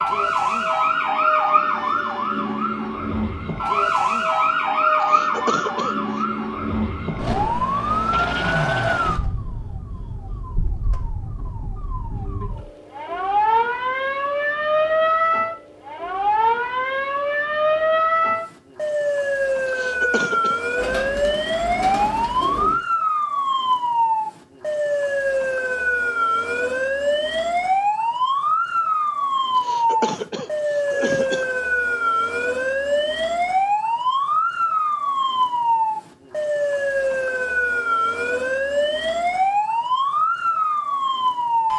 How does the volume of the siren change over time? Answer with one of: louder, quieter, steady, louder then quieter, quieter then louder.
steady.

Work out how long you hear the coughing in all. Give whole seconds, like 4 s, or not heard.
4 s.